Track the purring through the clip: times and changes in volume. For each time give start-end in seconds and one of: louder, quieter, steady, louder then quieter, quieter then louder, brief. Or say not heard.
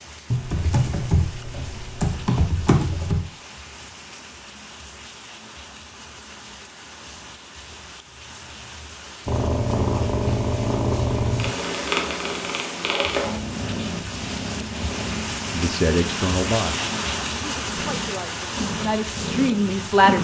9.2-20.2 quieter then louder.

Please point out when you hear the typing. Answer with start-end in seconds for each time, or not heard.
0.3-3.2.